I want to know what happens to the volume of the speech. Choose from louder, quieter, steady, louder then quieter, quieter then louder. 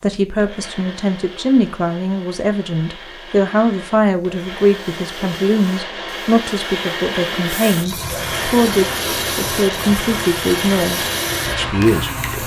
steady.